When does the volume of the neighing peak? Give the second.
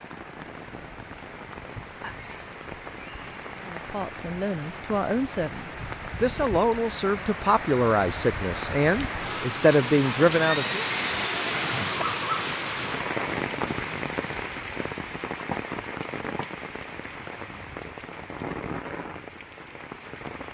11 s.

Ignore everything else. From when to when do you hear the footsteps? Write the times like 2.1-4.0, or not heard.
not heard.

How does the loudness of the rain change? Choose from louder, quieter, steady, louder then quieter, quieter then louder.
louder then quieter.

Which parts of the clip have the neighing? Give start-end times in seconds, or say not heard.
2.0-3.8, 10.3-12.1.